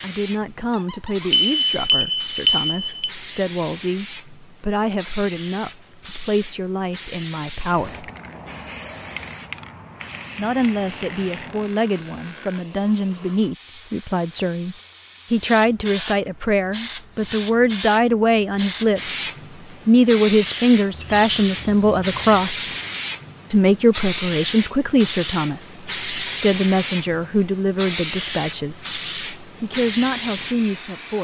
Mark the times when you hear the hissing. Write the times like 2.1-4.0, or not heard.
0.0-31.2.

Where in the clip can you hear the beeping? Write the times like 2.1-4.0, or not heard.
1.3-3.1.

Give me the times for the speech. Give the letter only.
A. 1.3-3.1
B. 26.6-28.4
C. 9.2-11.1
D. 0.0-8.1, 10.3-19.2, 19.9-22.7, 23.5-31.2
D.